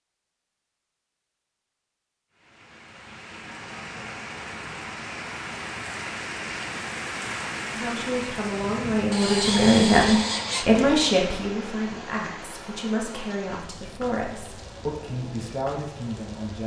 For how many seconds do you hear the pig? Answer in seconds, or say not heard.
2 s.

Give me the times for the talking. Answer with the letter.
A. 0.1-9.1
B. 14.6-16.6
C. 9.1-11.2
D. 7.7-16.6
D.